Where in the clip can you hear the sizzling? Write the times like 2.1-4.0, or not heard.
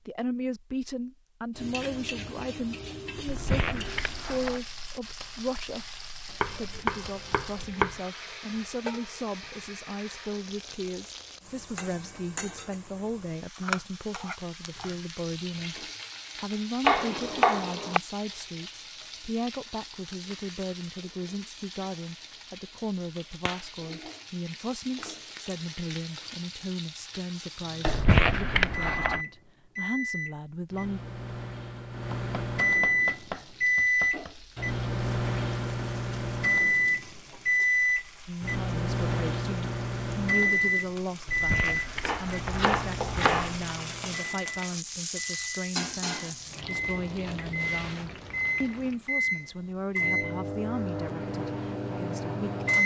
1.5-28.1, 33.0-49.0.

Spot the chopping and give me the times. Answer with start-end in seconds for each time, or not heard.
6.4-8.0, 16.8-18.0, 32.1-34.4, 42.0-43.5.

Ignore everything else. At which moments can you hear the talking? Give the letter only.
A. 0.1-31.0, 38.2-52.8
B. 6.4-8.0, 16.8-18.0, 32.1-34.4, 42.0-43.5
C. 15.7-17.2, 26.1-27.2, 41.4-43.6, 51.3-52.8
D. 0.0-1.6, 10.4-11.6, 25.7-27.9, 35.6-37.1
A.